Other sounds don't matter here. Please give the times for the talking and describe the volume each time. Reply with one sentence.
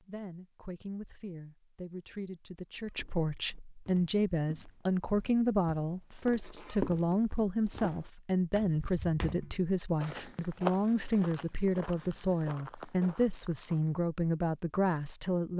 The talking can be heard from 0.0 to 15.5 s, getting louder.